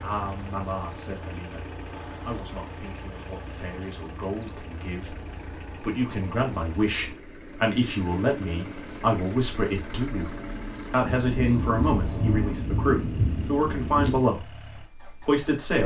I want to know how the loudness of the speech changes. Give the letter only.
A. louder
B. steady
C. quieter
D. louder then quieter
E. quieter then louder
A.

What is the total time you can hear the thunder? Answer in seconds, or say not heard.
3 s.